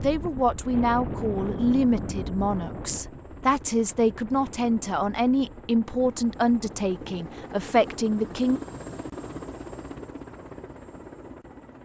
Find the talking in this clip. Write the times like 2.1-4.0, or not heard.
0.0-8.6.